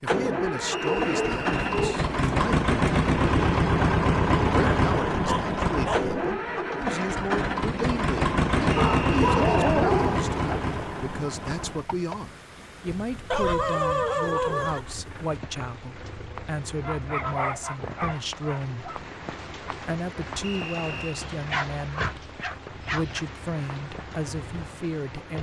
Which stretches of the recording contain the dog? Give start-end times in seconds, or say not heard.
0.8-2.1, 4.5-6.1, 8.6-10.6, 13.3-15.0, 16.8-19.0, 21.2-23.2.